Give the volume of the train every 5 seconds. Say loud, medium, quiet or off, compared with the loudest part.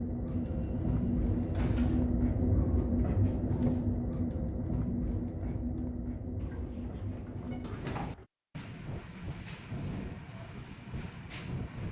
loud, medium, medium.